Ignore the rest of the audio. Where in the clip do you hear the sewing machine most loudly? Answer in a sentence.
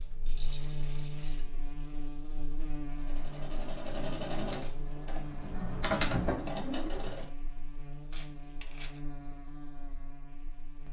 The loudest moment of the sewing machine is at 6 seconds.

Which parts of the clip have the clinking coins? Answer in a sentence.
You can hear the clinking coins from 0.2 to 1.5 s and from 8.1 to 9.0 s.